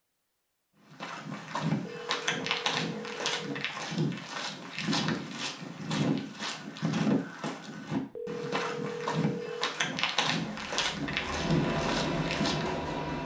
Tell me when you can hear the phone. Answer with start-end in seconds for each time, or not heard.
1.9-3.7, 8.2-9.8.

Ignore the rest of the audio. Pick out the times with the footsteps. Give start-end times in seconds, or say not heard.
0.9-12.7.